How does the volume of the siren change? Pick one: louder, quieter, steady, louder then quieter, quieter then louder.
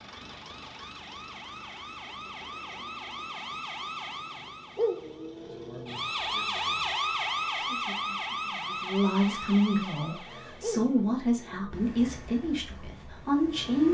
louder then quieter.